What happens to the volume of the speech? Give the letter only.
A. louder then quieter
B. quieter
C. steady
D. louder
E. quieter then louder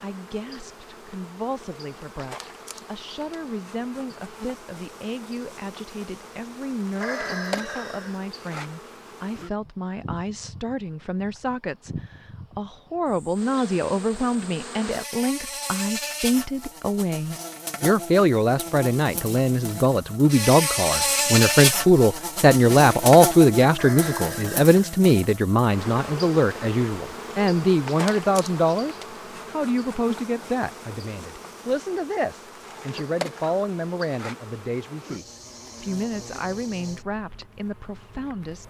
A.